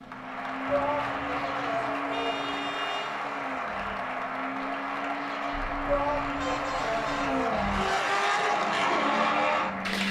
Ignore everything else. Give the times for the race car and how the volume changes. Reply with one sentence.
The race car can be heard from 0.0 to 10.0 s, getting louder.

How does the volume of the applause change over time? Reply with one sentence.
The volume of the applause stays about the same.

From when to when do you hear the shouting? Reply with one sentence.
The shouting can be heard from 0.7 to 2.7 s and from 5.8 to 8.2 s.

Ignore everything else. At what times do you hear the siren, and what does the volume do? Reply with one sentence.
The siren can't be heard in this clip.